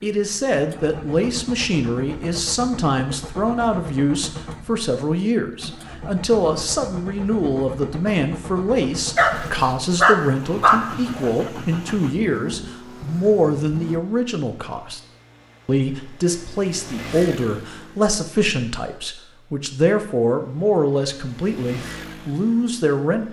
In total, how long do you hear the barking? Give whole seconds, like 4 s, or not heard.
2 s.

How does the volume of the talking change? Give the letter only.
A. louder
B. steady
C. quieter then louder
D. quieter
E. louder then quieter
B.